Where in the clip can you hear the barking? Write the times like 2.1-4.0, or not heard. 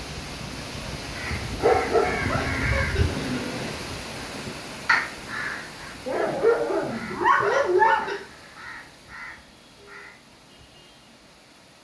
1.6-2.6, 6.0-8.2.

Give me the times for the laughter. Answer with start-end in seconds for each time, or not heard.
2.2-3.1, 7.4-8.2.